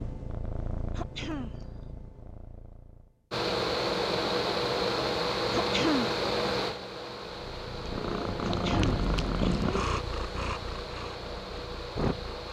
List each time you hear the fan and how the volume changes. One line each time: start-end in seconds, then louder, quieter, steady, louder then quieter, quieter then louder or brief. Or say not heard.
3.3-12.4 quieter.